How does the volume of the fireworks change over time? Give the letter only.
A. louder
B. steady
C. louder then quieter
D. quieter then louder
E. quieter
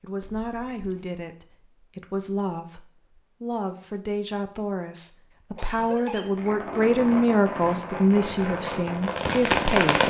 A.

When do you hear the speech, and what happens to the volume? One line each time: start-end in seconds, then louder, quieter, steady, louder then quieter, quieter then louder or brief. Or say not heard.
0.0-10.0 louder.